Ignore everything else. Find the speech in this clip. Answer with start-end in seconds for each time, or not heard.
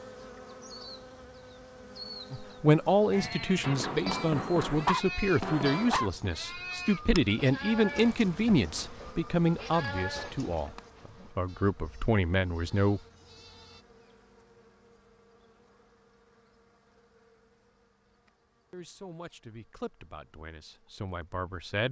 2.3-13.0, 18.7-21.8.